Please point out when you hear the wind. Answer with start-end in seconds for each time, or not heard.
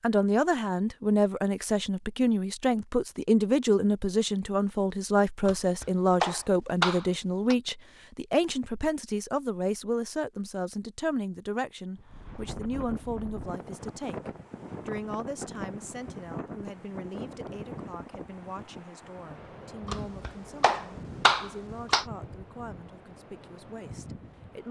11.9-24.6.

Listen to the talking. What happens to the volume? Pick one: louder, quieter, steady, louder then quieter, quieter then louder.
quieter.